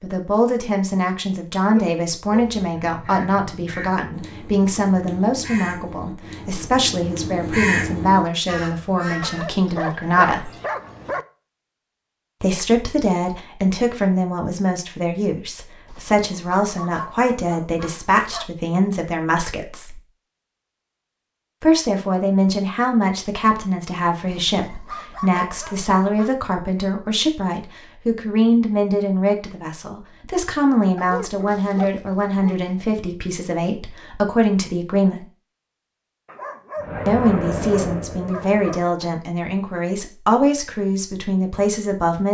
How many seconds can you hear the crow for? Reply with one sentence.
You can hear the crow for 7 seconds altogether.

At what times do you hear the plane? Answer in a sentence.
You can hear the plane from 36.8 to 38.8 s.